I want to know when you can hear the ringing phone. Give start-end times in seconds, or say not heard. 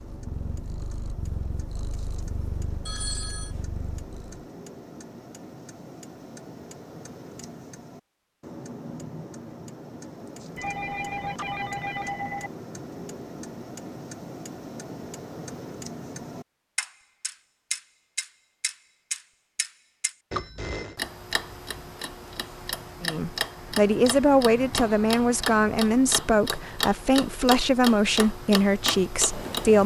2.9-3.5, 10.6-12.5, 20.3-21.0.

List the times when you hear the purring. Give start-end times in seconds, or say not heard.
0.0-4.4.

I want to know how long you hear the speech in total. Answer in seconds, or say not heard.
7 s.